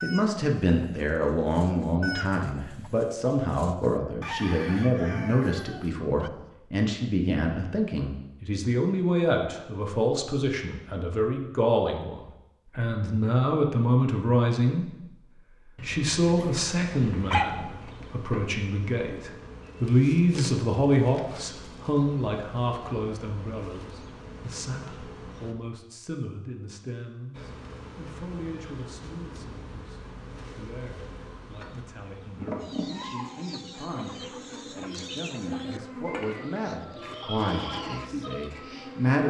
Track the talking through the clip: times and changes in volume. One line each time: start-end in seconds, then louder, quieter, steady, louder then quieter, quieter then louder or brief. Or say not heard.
0.0-14.9 steady
15.7-39.2 quieter then louder.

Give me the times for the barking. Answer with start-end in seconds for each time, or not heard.
15.8-17.4.